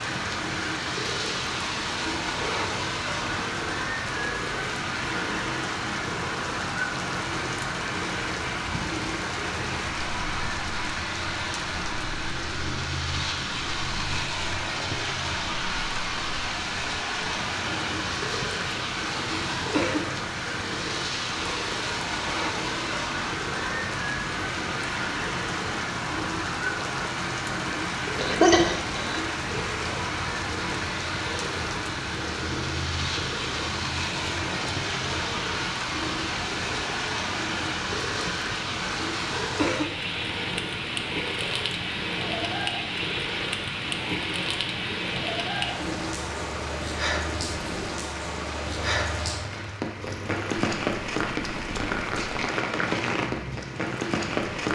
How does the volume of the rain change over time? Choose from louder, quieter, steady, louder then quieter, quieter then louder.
steady.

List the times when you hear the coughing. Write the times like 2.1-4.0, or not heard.
28.1-29.2.